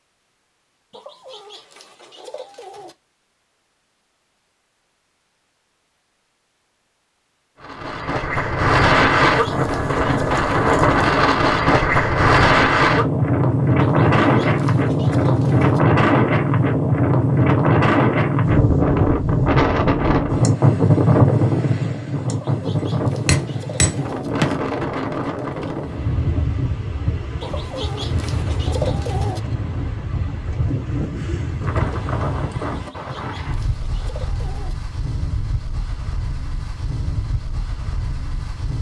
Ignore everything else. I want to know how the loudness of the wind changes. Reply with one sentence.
The loudness of the wind goes down.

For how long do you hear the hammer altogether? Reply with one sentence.
You can hear the hammer for 2 seconds altogether.